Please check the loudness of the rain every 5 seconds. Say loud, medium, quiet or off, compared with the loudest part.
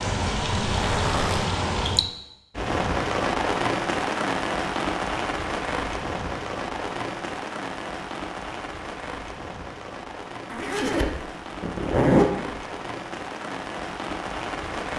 loud, medium, medium.